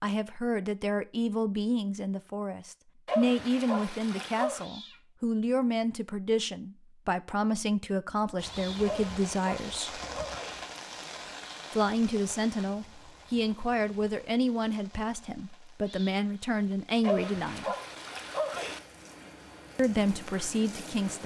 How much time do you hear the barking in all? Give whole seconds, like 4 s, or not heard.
5 s.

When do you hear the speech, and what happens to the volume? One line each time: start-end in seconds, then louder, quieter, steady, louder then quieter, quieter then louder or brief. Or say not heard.
0.0-10.0 steady
11.7-17.8 steady
19.8-21.2 brief.